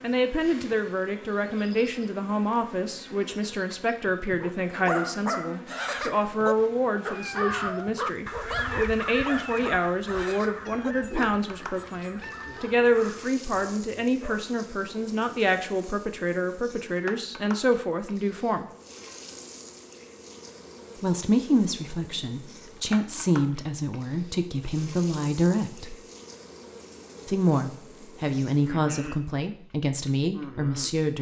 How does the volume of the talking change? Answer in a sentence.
The loudness of the talking stays about the same.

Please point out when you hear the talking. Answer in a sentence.
You can hear the talking from 0.0 to 18.6 s, from 21.0 to 25.9 s and from 27.2 to 31.1 s.